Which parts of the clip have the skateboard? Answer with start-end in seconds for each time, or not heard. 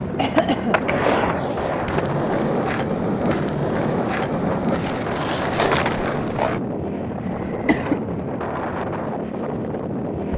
0.0-6.6.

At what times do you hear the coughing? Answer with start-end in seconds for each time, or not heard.
0.1-0.8, 7.2-8.0.